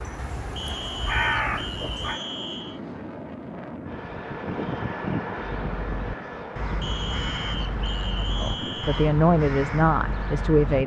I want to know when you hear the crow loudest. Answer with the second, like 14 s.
1 s.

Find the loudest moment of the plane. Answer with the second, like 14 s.
5 s.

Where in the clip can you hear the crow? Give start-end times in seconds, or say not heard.
0.0-2.2, 5.5-10.8.